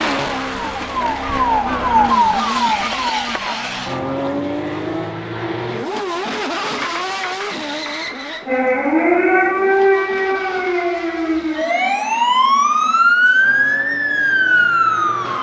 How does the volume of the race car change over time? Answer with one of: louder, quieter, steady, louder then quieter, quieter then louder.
quieter.